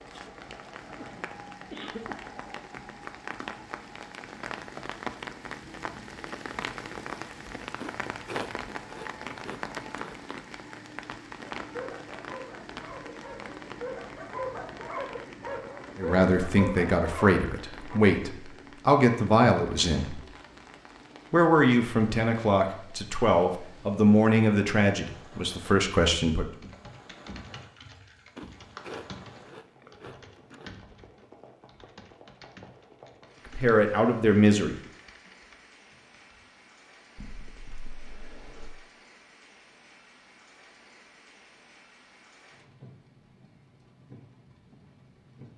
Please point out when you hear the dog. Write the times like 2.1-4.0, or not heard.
11.6-18.0.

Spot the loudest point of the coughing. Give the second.
2 s.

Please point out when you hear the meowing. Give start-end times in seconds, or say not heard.
not heard.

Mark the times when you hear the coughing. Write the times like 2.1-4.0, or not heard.
0.9-2.2, 37.1-38.7.